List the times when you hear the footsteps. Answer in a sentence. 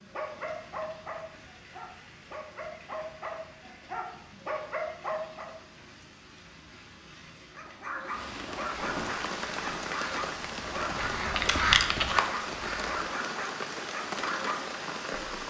You can't hear the footsteps here.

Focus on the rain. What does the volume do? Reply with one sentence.
The loudness of the rain goes up.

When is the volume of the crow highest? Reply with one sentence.
The loudest moment of the crow is at 12 seconds.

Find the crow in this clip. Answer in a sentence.
You can hear the crow from 8.8 to 13.1 s.